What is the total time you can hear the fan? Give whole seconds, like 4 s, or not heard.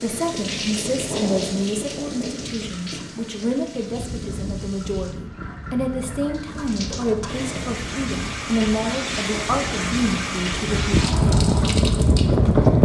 13 s.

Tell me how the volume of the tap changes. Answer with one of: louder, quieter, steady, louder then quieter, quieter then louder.
quieter then louder.